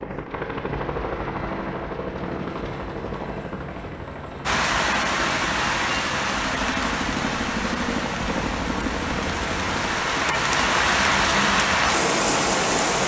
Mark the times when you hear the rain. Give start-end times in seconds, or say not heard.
4.5-13.0.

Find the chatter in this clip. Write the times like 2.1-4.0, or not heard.
not heard.